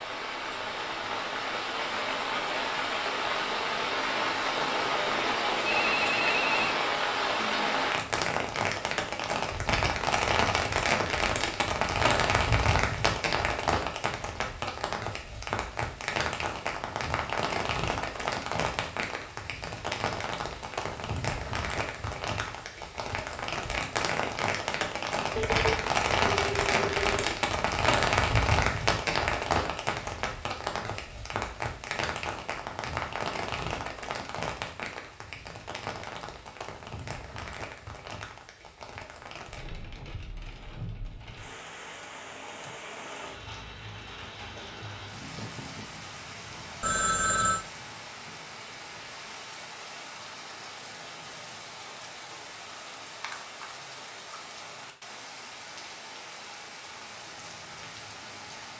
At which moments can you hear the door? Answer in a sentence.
You can't hear the door here.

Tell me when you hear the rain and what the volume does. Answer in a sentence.
The rain can be heard from 0.0 to 58.7 s, getting quieter.